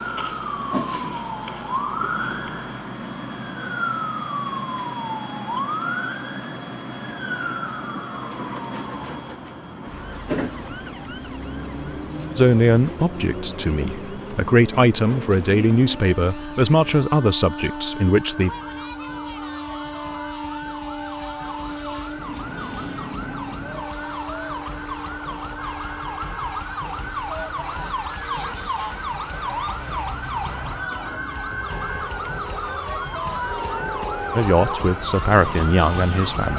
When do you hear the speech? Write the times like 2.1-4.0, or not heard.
12.3-18.5, 34.4-36.5.